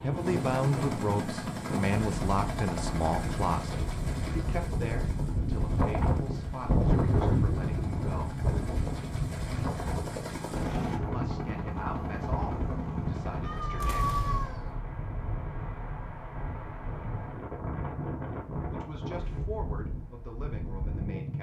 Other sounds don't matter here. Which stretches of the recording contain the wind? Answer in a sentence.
You can hear the wind from 0.0 to 21.3 s.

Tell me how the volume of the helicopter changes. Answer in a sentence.
The loudness of the helicopter goes down, then up.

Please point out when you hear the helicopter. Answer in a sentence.
The helicopter can be heard from 0.0 to 14.8 s.